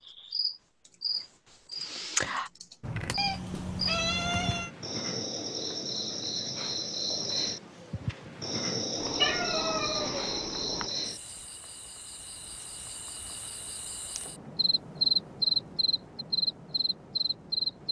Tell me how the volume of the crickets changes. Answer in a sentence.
The volume of the crickets goes down, then up.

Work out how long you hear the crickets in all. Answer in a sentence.
You can hear the crickets for 18 seconds altogether.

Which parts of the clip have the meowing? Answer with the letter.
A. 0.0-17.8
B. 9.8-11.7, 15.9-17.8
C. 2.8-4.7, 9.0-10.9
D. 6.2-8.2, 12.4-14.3
C.